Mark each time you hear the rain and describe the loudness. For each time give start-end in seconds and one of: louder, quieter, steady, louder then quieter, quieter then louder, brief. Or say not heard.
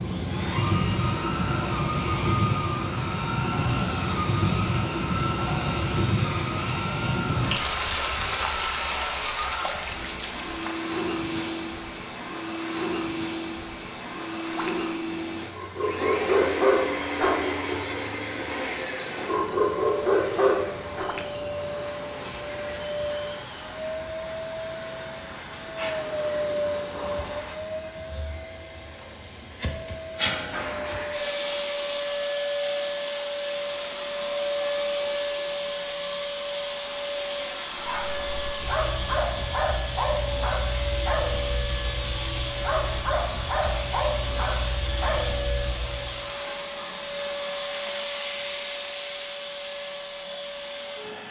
0.0-27.6 quieter.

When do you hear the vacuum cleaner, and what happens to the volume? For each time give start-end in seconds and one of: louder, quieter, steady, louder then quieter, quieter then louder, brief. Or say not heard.
0.0-51.2 steady.